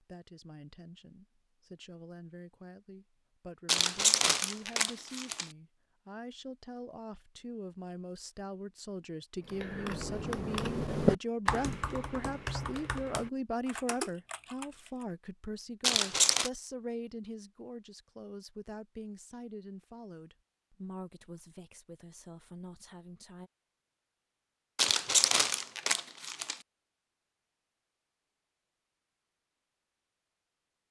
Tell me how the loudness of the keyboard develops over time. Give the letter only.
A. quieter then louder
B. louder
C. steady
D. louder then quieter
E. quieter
D.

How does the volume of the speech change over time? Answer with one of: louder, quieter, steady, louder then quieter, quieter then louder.
louder then quieter.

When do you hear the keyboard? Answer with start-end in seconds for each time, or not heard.
9.4-15.1.